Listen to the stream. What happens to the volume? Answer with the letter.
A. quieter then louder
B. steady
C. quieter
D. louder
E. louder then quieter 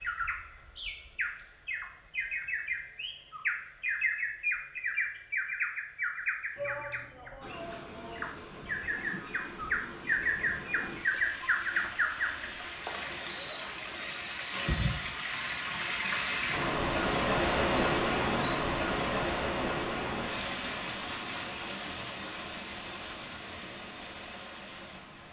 E.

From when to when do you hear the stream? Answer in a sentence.
The stream can be heard from 7.4 to 25.2 s.